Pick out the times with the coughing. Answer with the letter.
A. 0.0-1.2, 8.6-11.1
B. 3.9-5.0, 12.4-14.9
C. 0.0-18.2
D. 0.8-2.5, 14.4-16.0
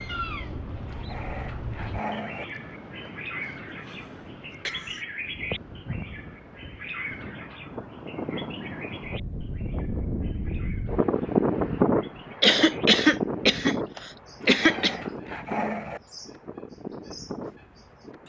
B.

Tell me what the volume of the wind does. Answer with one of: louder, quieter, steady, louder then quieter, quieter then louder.
louder then quieter.